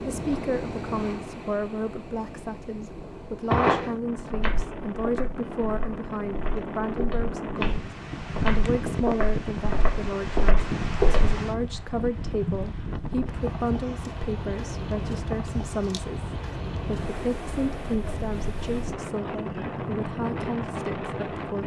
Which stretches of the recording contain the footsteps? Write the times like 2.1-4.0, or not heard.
3.5-11.4.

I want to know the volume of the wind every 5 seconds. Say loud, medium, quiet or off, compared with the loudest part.
medium, loud, loud, loud, loud.